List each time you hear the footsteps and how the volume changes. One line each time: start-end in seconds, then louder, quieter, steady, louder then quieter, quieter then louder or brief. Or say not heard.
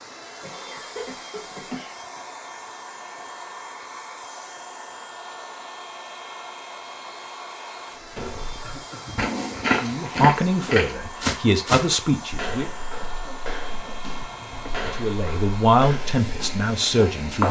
8.2-17.4 quieter.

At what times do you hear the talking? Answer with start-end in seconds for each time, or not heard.
9.8-12.7, 14.9-17.4.